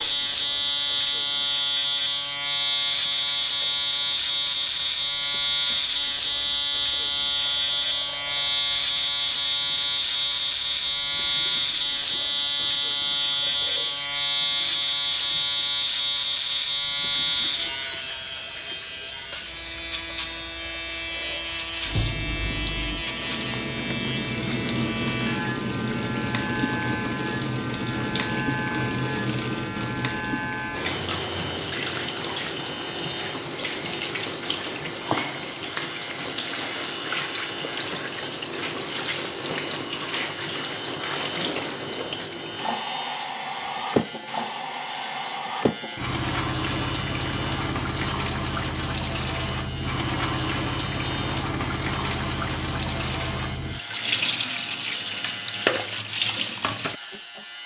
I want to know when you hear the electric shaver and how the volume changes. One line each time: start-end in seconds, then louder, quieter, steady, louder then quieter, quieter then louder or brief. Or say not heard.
0.0-57.6 quieter.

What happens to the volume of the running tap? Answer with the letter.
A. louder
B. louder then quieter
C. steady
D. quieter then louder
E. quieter
A.